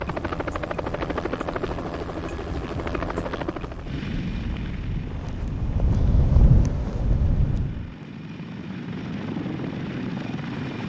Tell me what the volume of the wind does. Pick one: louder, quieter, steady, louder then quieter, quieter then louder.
louder.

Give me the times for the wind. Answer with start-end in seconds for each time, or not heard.
0.0-8.0.